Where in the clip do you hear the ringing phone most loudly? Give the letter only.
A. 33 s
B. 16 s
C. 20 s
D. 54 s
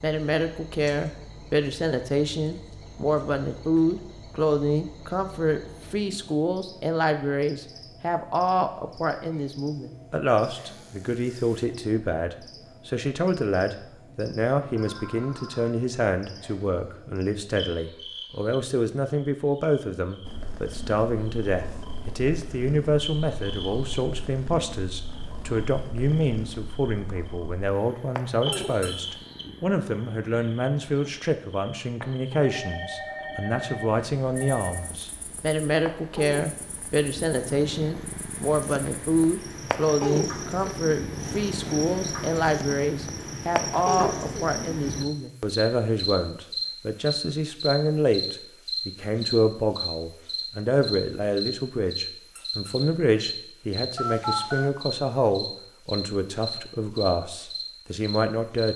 D.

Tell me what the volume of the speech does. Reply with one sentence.
The volume of the speech stays about the same.